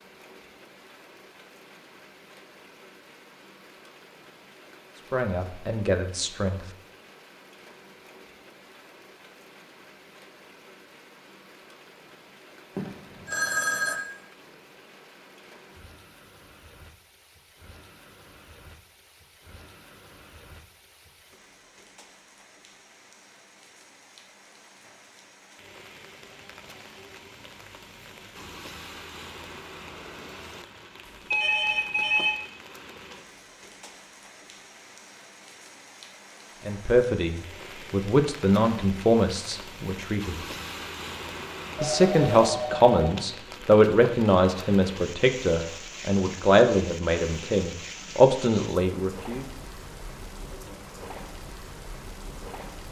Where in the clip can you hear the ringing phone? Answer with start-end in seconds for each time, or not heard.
12.8-14.0, 31.3-32.4, 41.8-42.9.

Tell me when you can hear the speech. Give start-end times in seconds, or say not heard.
5.1-6.6, 36.6-40.4, 41.8-49.5.